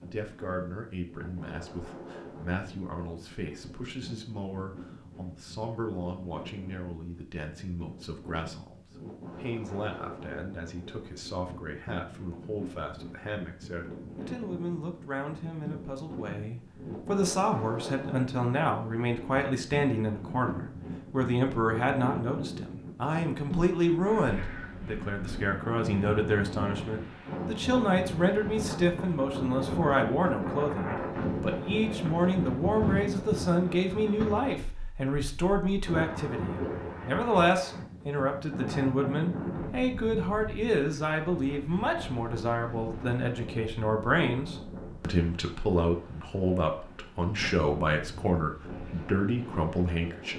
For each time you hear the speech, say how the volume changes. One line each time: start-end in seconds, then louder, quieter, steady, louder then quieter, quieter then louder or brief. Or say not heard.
0.0-50.3 louder.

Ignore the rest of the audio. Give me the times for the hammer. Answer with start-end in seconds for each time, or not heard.
not heard.